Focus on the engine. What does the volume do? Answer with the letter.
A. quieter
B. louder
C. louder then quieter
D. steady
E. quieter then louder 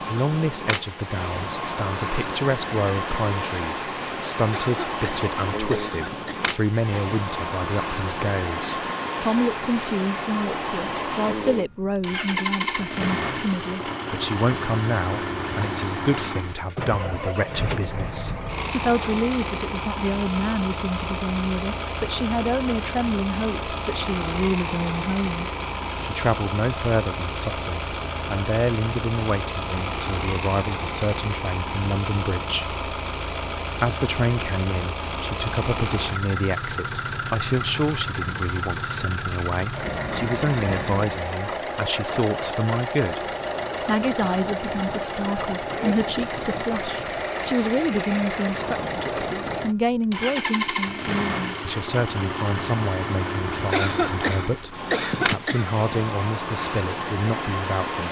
D.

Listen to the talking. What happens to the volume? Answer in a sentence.
The loudness of the talking stays about the same.